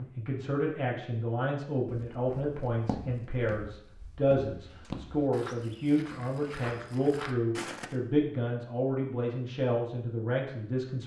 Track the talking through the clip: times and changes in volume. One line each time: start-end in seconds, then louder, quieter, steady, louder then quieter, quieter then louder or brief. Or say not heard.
0.0-11.0 steady.